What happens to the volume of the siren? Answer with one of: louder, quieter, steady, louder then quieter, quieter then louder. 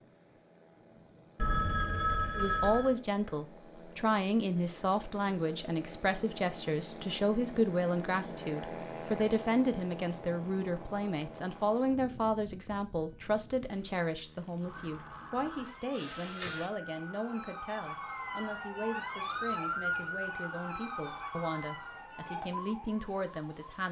louder then quieter.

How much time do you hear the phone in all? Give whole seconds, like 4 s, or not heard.
3 s.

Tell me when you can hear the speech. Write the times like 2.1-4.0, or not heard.
2.4-23.8.